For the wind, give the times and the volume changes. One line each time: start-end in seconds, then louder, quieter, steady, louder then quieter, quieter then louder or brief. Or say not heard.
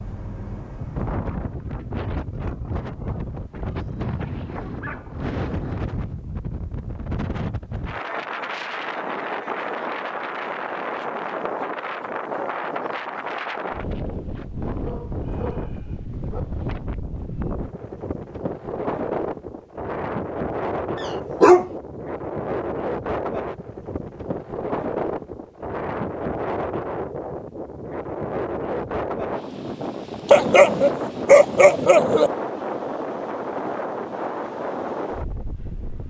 0.0-36.0 steady.